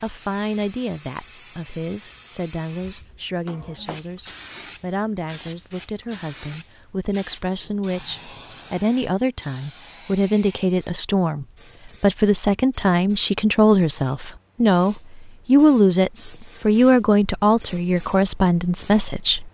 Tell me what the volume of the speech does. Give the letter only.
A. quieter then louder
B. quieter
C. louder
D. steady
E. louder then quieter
C.